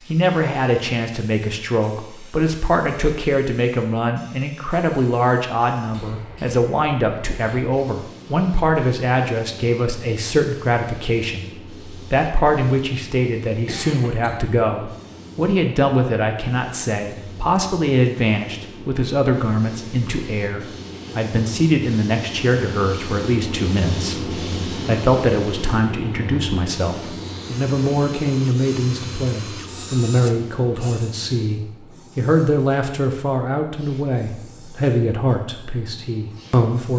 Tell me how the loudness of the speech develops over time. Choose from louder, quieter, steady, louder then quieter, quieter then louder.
steady.